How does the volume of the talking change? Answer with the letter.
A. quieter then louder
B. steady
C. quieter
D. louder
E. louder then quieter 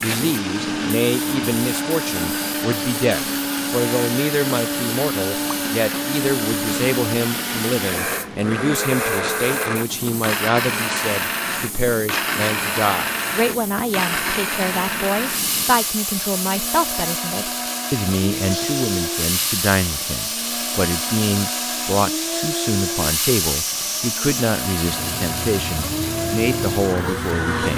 B.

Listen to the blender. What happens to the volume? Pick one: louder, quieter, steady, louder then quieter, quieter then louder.
steady.